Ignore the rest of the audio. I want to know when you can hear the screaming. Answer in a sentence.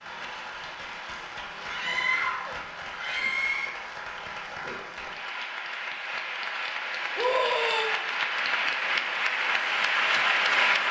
The screaming can be heard from 1.6 to 3.7 s and from 7.2 to 7.8 s.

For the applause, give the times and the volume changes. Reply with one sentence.
You can hear the applause from 0.0 to 10.8 s, getting louder.